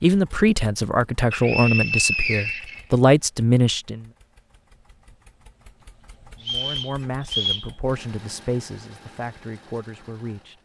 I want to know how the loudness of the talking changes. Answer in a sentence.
The loudness of the talking goes down.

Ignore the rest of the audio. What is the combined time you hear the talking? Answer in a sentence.
You can hear the talking for 8 seconds altogether.